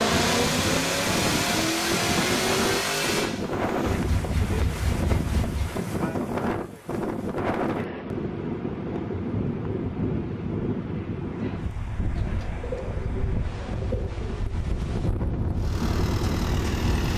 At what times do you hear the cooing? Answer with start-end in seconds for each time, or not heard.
12.2-14.6.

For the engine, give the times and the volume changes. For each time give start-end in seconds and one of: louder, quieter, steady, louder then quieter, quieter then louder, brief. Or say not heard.
0.0-5.8 quieter
15.6-17.1 brief.